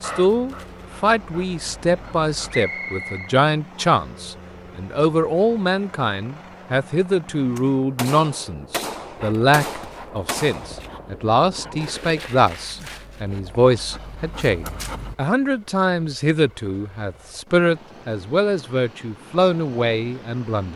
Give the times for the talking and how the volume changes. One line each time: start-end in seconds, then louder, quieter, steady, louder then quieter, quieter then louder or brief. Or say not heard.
0.0-20.7 steady.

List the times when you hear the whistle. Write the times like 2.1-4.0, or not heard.
2.5-4.0.